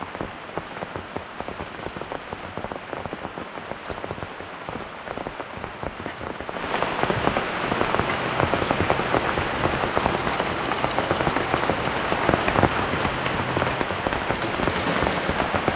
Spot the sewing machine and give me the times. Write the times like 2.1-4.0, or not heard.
7.6-15.6.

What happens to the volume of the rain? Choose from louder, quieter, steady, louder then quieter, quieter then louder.
louder.